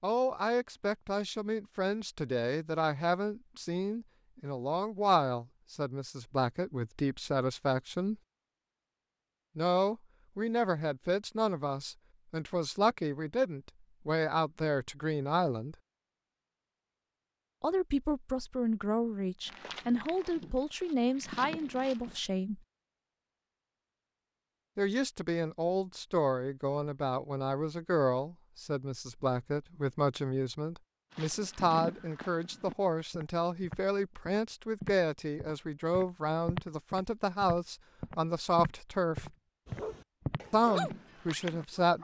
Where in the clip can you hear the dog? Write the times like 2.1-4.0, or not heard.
39.6-41.9.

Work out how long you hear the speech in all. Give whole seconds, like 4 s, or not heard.
35 s.